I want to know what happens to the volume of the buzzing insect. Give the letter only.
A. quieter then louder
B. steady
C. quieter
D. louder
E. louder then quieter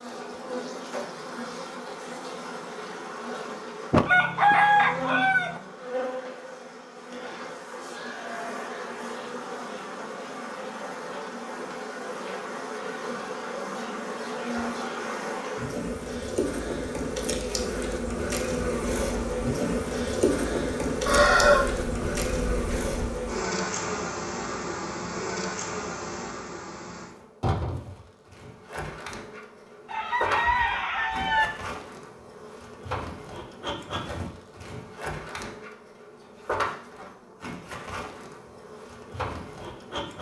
E.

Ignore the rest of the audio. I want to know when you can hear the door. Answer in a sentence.
You can hear the door from 3.9 to 4.6 s.